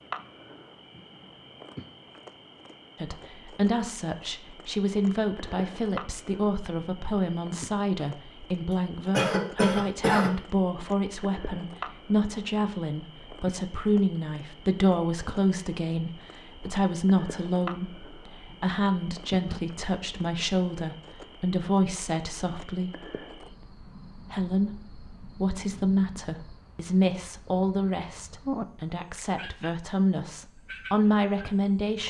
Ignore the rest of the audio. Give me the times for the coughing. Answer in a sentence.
You can hear the coughing from 9.1 to 10.3 s.